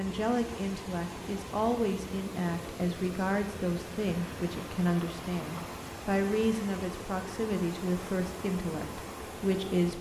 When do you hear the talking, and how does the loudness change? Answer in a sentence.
The talking can be heard from 0.0 to 9.9 s, at a steady volume.